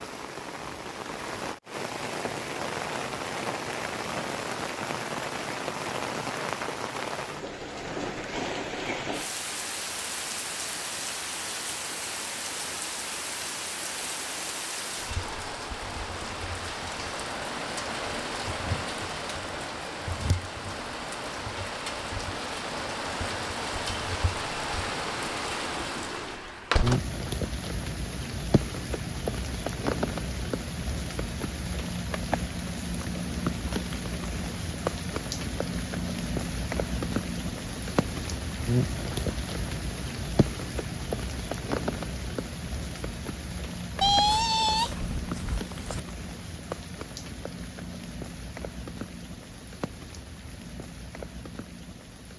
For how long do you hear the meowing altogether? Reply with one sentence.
You can hear the meowing for 2 seconds altogether.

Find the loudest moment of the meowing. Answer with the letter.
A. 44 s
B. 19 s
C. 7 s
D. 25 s
A.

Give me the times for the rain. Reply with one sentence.
The rain can be heard from 0.0 to 52.3 s.